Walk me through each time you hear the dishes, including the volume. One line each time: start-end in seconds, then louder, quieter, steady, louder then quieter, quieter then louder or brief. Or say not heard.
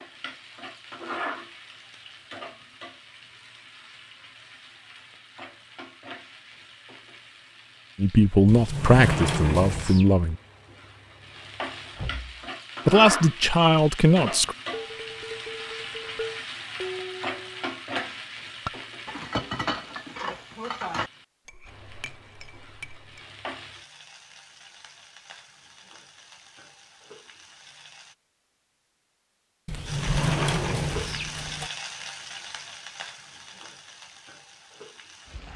14.7-23.2 louder then quieter.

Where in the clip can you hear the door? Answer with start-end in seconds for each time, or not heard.
8.4-10.1, 11.9-12.4, 29.6-31.7.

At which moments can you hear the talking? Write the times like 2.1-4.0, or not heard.
8.0-10.3, 12.8-14.6.